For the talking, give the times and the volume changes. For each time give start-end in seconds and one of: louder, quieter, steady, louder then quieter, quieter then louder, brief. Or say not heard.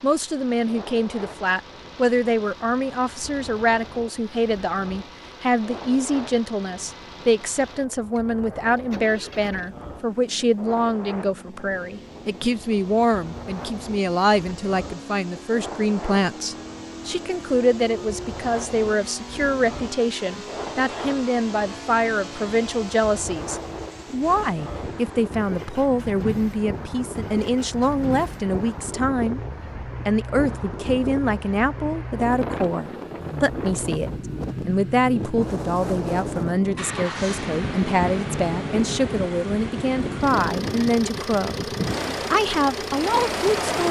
0.0-29.4 steady
30.1-41.6 steady
42.3-43.8 brief.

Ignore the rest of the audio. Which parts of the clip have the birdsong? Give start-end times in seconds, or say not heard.
not heard.